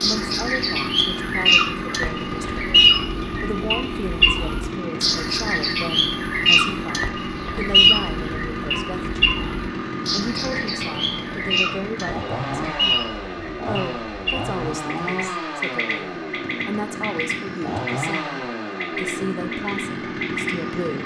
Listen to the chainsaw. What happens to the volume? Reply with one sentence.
The volume of the chainsaw stays about the same.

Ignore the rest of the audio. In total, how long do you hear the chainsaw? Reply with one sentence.
The chainsaw can be heard for 21 seconds in total.